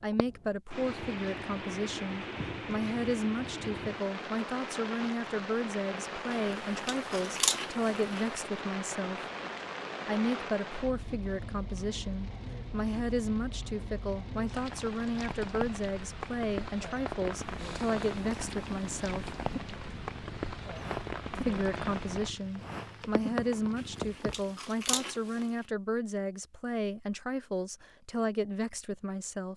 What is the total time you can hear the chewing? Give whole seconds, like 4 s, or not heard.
4 s.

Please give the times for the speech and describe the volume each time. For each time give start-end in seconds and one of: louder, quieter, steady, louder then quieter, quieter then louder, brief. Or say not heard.
0.0-9.2 steady
10.1-19.4 steady
21.4-29.5 steady.